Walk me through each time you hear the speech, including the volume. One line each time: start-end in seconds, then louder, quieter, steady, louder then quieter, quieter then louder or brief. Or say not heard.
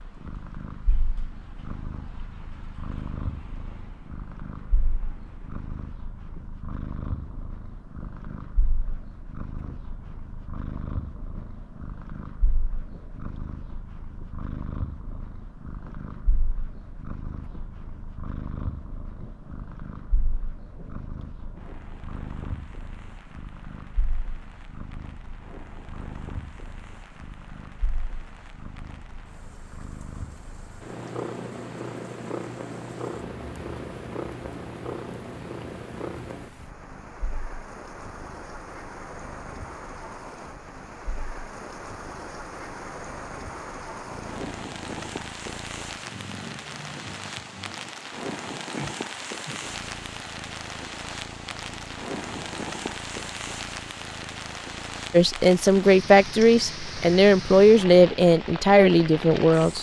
55.1-59.7 steady.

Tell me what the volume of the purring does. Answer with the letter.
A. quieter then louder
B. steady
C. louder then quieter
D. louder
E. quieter
B.